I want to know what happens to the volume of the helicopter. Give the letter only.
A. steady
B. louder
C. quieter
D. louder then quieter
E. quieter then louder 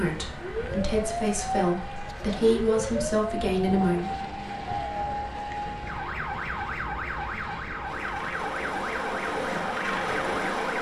B.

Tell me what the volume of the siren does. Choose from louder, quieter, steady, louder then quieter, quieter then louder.
steady.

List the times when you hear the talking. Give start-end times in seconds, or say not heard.
0.0-4.1.